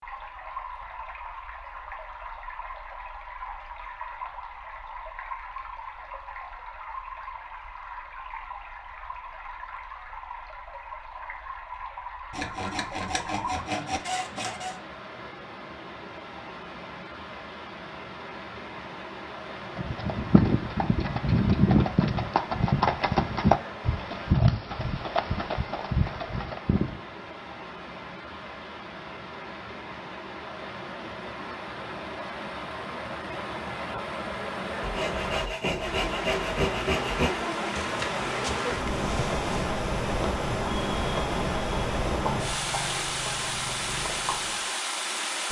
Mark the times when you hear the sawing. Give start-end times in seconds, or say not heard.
12.3-14.8, 34.8-37.5.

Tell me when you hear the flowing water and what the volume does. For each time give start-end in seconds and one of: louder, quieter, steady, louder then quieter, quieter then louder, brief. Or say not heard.
0.0-45.4 louder.